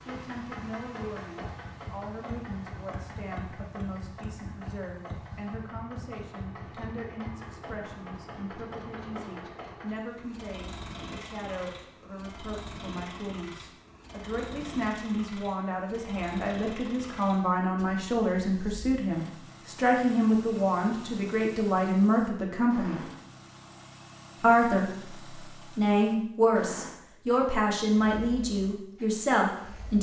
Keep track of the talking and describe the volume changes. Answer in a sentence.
The volume of the talking goes up.